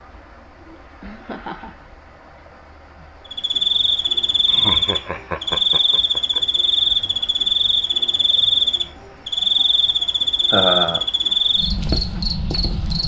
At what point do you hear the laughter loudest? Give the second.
11 s.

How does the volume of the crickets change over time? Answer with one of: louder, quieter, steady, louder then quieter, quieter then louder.
steady.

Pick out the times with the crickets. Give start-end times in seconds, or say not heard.
3.2-13.0.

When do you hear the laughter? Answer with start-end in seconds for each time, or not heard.
0.6-1.9, 4.5-6.4, 10.5-11.1.